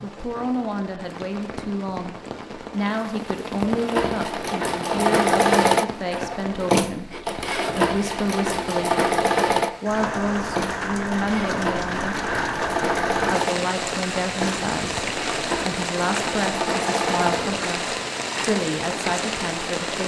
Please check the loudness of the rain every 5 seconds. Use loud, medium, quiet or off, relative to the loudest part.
medium, medium, loud, loud.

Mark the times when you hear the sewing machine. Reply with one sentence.
The sewing machine can be heard from 3.8 to 17.8 s.